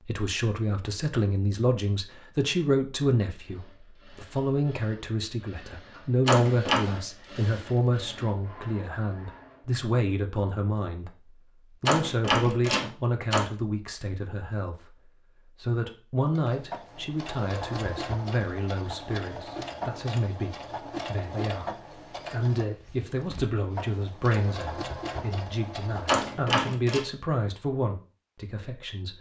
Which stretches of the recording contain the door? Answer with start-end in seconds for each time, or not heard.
6.2-6.9, 11.8-13.4, 26.1-27.0.